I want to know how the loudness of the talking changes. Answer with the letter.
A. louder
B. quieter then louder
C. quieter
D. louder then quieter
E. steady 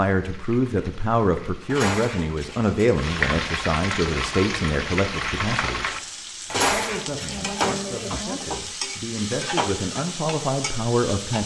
B.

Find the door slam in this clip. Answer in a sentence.
You can't hear the door slam here.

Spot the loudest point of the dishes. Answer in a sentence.
The loudest moment of the dishes is at 7 seconds.